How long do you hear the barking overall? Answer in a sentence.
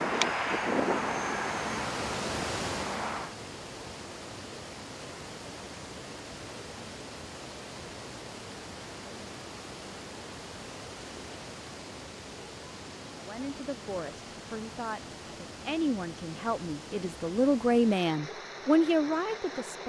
You can't hear the barking here.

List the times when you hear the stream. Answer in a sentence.
The stream can be heard from 0.0 to 19.8 s.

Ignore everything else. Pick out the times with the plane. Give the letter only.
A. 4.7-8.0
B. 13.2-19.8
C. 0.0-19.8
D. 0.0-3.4
D.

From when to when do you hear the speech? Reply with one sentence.
The speech can be heard from 13.2 to 19.8 s.